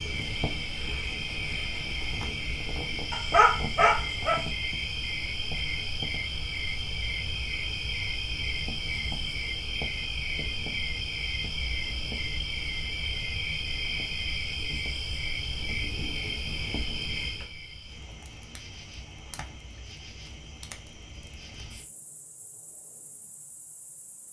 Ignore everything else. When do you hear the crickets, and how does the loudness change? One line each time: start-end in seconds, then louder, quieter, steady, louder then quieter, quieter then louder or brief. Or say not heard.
0.0-24.2 quieter.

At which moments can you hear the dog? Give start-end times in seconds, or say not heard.
3.1-4.5.